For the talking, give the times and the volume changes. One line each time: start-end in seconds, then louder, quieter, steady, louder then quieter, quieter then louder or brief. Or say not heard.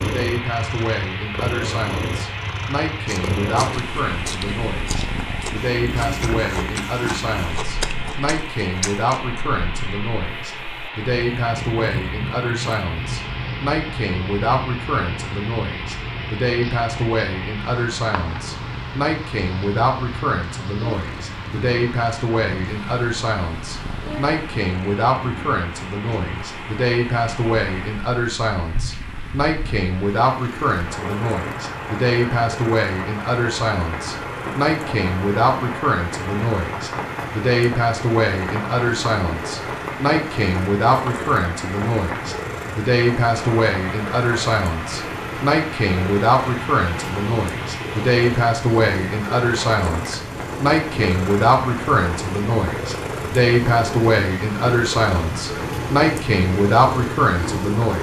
0.0-57.9 louder.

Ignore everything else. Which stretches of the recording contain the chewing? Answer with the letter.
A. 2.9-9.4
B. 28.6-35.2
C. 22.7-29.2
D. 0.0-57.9
A.